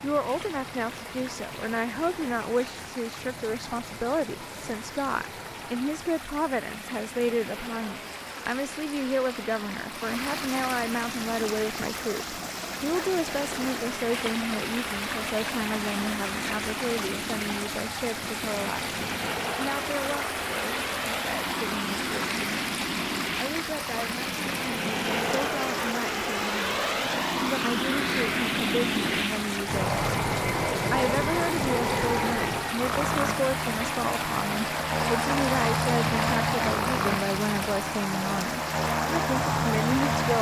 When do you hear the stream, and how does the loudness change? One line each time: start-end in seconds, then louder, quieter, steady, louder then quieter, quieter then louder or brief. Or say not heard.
0.0-40.3 louder.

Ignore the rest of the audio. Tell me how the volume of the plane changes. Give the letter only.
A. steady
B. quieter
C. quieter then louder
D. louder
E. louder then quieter
D.